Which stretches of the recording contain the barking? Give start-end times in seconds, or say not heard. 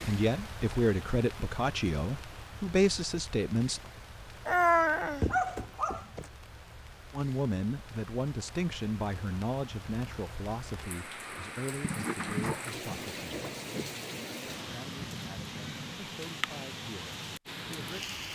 4.5-6.2, 11.8-14.0.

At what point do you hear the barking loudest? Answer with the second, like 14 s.
5 s.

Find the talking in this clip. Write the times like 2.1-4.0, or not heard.
0.0-3.9, 7.1-13.3, 14.6-18.3.